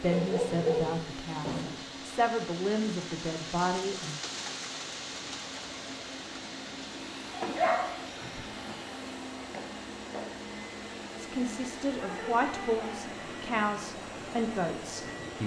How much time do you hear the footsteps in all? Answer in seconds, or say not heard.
not heard.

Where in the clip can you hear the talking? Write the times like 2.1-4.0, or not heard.
0.0-4.2, 11.2-15.4.